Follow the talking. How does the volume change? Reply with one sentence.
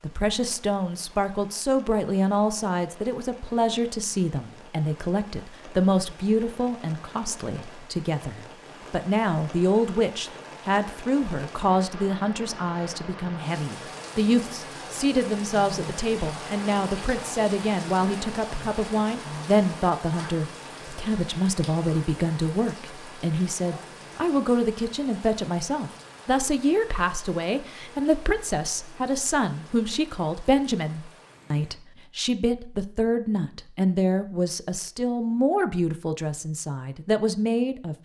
The volume of the talking stays about the same.